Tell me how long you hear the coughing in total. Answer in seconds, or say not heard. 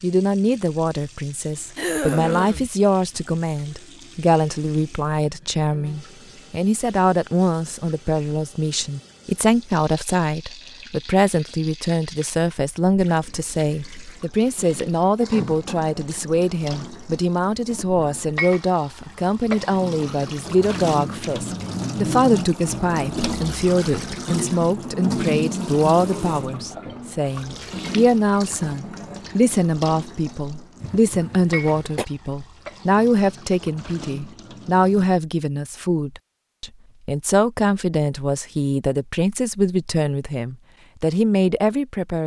3 s.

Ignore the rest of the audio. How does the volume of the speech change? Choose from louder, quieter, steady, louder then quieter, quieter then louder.
steady.